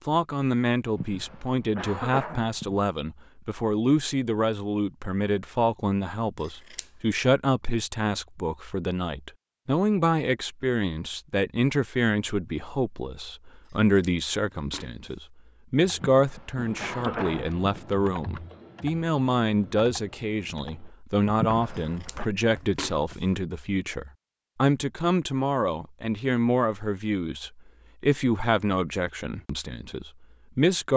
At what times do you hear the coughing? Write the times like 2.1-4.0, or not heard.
0.9-2.8, 16.0-17.8, 21.4-22.3.